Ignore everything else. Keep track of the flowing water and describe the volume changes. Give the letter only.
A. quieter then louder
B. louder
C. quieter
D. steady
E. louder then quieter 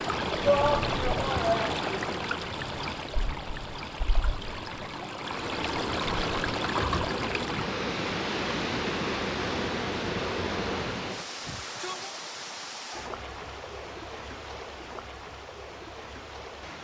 C.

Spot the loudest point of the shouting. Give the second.
1 s.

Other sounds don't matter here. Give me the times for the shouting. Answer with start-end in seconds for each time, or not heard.
0.4-1.8, 11.4-12.2.